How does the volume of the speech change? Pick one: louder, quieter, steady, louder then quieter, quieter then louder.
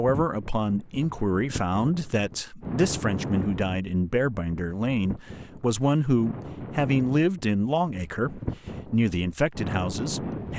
steady.